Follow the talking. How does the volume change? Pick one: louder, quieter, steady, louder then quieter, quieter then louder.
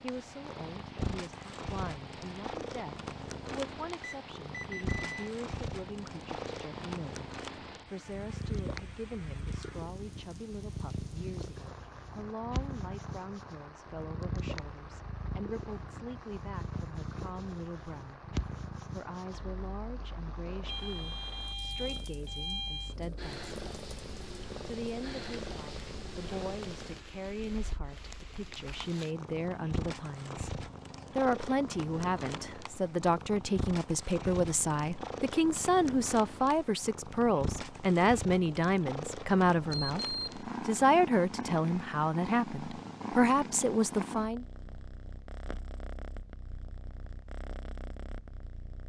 louder.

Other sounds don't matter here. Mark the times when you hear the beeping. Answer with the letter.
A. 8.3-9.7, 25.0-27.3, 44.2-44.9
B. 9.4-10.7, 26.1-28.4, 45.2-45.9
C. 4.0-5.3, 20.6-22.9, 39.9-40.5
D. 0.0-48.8
C.